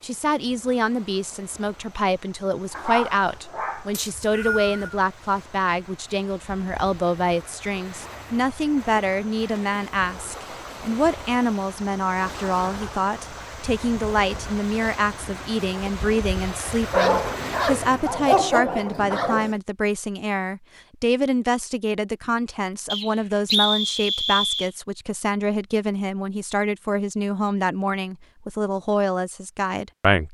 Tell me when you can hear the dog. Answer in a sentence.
The dog can be heard from 2.7 to 4.0 s and from 16.9 to 19.5 s.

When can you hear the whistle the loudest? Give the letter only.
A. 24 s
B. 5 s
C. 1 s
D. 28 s
A.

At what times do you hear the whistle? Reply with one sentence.
The whistle can be heard from 3.9 to 5.0 s and from 22.9 to 24.7 s.